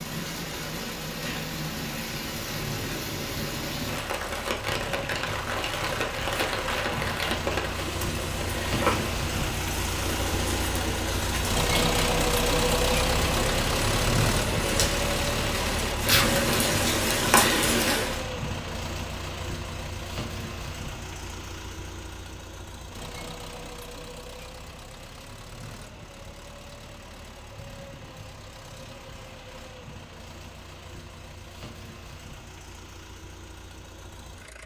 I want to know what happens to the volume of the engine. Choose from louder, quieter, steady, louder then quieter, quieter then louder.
louder then quieter.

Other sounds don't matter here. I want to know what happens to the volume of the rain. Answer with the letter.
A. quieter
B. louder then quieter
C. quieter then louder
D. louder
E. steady
D.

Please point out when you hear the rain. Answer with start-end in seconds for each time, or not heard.
0.0-18.2.